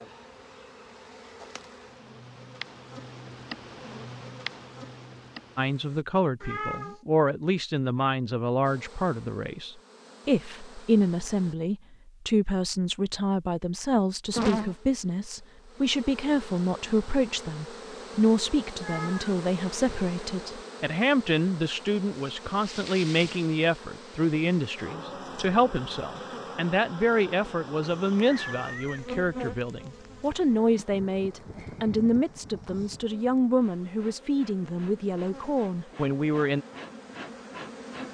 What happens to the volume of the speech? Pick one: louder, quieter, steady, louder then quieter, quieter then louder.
steady.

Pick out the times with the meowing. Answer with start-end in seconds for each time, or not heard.
6.4-7.0, 18.8-19.4, 27.9-29.1.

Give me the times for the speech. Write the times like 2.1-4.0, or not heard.
5.5-36.6.